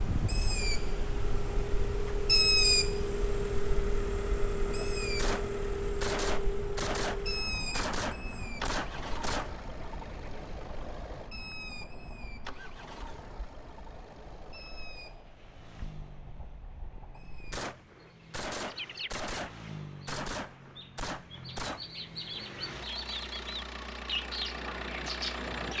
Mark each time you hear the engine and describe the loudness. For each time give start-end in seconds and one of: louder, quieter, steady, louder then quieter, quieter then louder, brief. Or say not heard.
0.0-25.7 quieter then louder.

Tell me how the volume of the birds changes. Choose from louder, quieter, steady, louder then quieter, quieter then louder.
quieter then louder.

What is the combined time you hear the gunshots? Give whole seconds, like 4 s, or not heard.
9 s.